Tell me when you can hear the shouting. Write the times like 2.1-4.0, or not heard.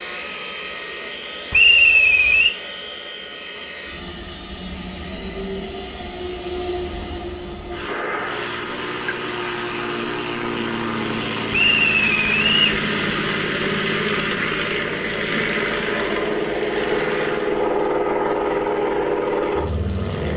not heard.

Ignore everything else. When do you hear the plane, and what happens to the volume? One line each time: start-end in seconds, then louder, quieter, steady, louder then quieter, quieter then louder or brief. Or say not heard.
0.0-20.3 louder.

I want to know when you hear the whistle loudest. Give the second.
2 s.